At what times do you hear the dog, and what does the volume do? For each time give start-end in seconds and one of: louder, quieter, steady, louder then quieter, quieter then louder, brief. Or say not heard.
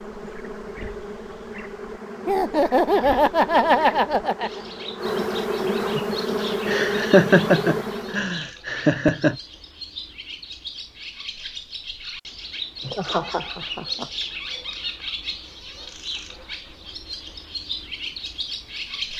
not heard.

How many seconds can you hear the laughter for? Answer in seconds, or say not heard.
6 s.